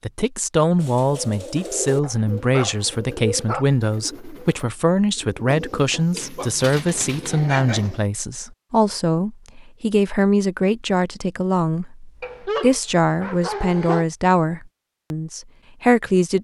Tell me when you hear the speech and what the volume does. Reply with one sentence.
The speech can be heard from 0.0 to 16.3 s, at a steady volume.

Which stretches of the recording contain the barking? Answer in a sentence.
You can hear the barking from 2.0 to 3.6 s, from 5.5 to 8.1 s and from 12.2 to 14.1 s.